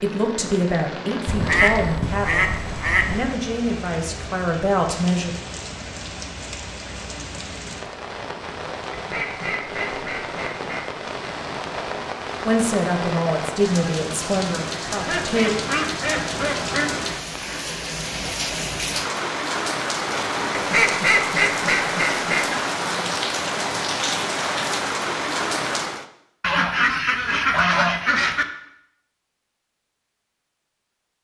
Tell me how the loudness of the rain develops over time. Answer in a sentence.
The loudness of the rain goes up.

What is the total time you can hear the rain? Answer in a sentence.
The rain can be heard for 26 seconds in total.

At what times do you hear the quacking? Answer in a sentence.
The quacking can be heard from 1.2 to 3.4 s, from 8.9 to 10.8 s, from 15.1 to 16.9 s, from 20.5 to 22.4 s and from 26.4 to 28.4 s.